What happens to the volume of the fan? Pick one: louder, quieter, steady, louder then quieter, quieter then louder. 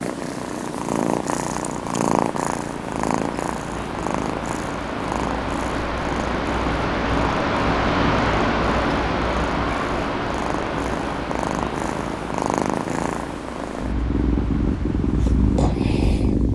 louder then quieter.